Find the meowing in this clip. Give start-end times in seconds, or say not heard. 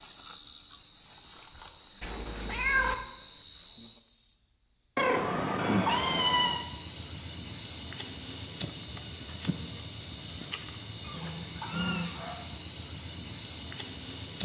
2.0-3.0, 5.0-6.7, 11.0-12.4.